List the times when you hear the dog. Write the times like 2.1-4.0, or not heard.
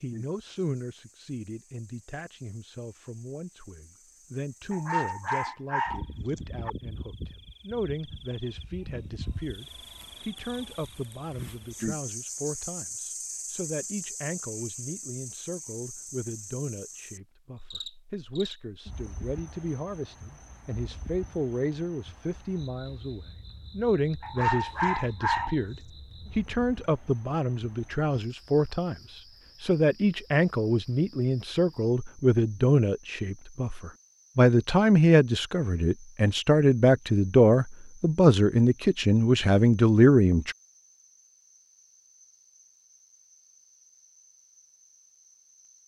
4.7-6.7, 24.2-25.6.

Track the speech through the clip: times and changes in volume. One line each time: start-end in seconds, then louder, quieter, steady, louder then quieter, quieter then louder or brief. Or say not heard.
0.0-40.5 louder.